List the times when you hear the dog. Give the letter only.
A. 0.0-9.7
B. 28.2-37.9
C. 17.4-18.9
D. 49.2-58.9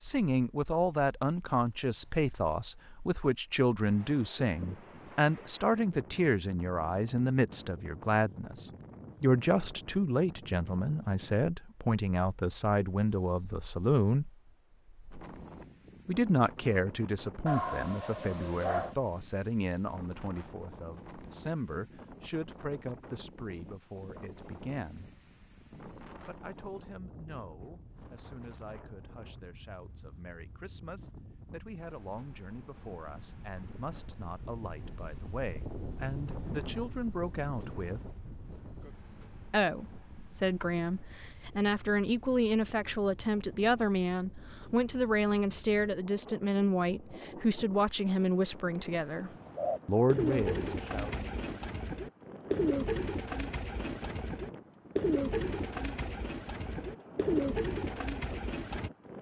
C.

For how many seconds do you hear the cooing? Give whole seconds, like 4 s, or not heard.
10 s.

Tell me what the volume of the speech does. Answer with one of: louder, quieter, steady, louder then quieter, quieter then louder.
quieter then louder.